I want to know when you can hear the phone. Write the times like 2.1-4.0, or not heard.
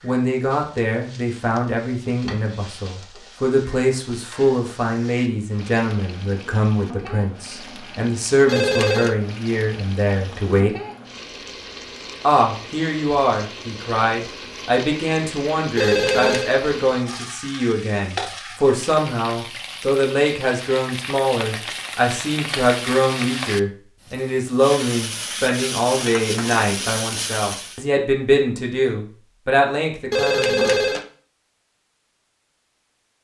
8.4-9.2, 15.8-16.6, 30.1-31.1.